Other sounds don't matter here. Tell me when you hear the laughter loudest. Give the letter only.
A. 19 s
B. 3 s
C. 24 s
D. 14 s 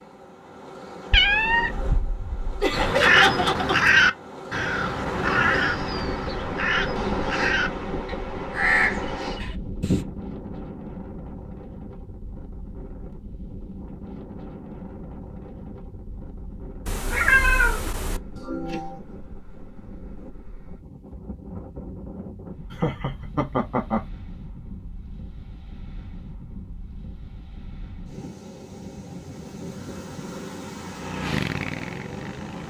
B.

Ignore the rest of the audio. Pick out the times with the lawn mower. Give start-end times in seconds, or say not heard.
30.8-32.6.